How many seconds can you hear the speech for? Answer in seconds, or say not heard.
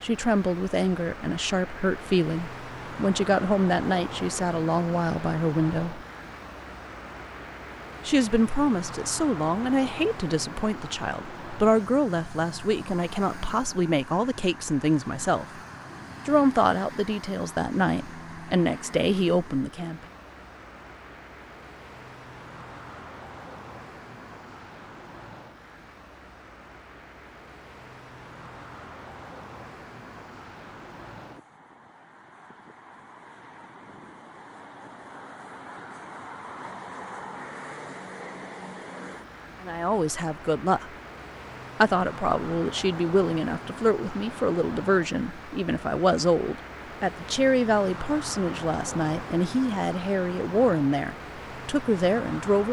29 s.